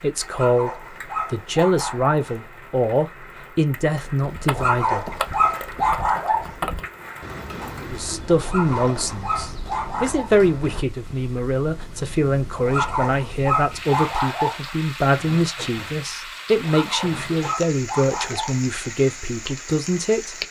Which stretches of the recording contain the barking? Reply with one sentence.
The barking can be heard from 0.3 to 2.2 s, from 4.5 to 6.5 s, from 8.4 to 10.3 s, from 12.7 to 14.6 s and from 16.6 to 18.6 s.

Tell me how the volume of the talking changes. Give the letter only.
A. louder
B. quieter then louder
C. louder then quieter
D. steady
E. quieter
D.